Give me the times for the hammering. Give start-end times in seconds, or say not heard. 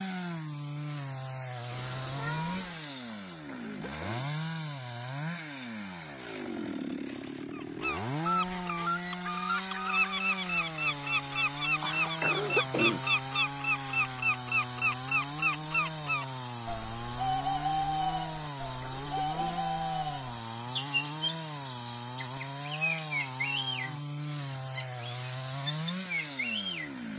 not heard.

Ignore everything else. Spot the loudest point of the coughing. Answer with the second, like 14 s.
13 s.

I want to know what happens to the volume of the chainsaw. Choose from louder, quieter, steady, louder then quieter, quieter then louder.
steady.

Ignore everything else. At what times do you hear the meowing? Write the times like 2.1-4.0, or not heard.
1.7-2.8.